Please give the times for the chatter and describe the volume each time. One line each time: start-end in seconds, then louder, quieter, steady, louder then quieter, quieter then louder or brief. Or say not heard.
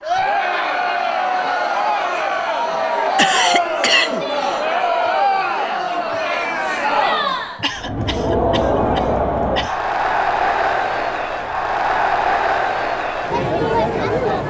0.0-14.4 steady.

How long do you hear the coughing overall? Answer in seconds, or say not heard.
4 s.